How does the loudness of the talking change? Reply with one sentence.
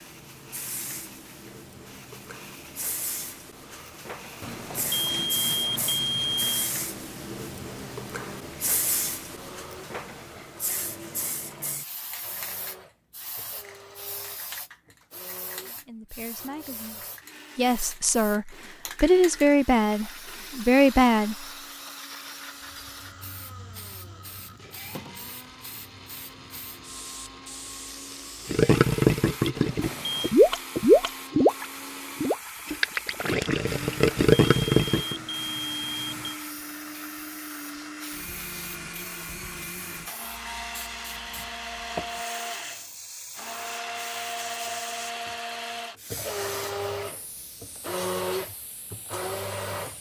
The loudness of the talking goes up.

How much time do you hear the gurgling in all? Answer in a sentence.
You can hear the gurgling for 7 seconds altogether.